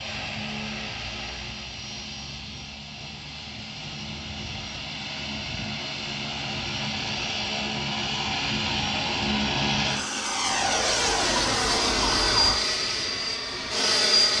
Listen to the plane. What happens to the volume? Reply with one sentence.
The volume of the plane goes up.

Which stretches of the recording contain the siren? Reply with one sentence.
The siren can be heard from 10.4 to 12.6 s.